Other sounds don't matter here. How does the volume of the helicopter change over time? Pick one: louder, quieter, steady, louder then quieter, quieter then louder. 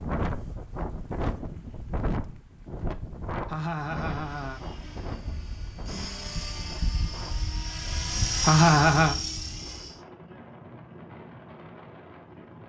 louder.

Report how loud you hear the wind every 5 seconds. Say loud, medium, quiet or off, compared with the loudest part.
loud, medium, medium.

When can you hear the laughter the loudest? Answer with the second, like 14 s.
9 s.